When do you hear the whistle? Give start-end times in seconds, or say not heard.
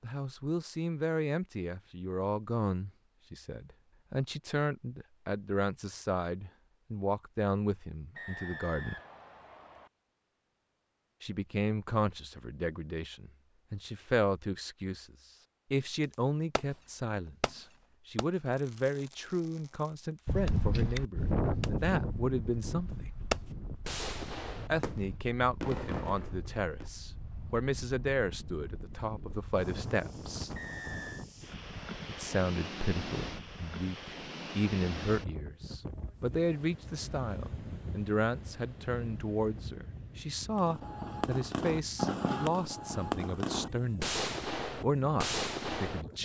8.2-9.9, 30.6-31.2.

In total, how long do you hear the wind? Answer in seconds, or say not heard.
26 s.